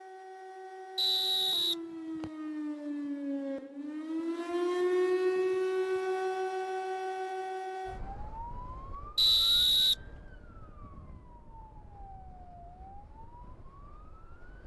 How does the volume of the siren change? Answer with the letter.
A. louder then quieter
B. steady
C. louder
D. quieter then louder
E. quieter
A.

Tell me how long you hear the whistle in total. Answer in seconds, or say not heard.
2 s.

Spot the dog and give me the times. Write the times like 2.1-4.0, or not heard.
not heard.